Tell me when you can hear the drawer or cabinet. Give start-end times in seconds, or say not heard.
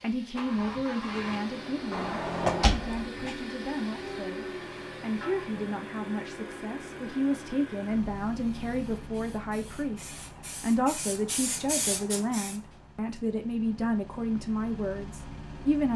1.9-3.4.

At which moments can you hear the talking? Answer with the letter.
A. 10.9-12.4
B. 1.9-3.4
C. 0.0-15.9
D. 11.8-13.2
C.